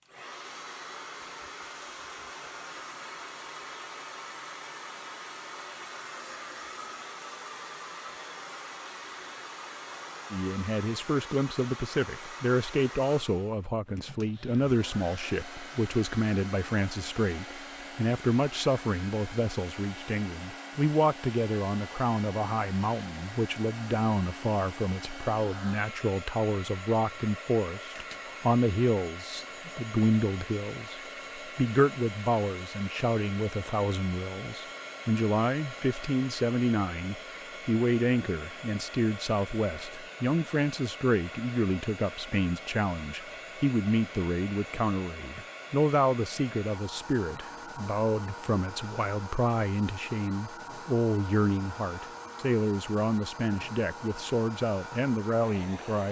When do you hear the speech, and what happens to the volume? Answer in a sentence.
You can hear the speech from 10.3 to 56.0 s, at a steady volume.